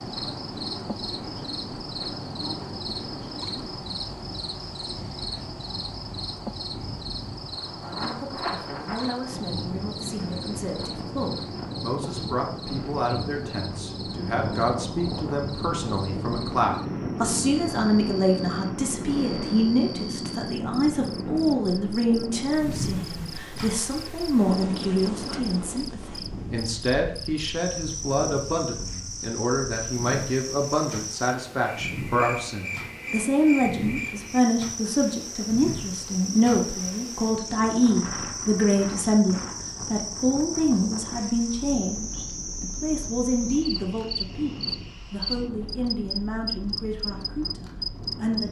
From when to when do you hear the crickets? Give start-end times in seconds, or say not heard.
0.0-48.4.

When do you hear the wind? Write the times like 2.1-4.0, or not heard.
0.0-48.4.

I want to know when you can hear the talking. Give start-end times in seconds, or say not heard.
7.7-48.4.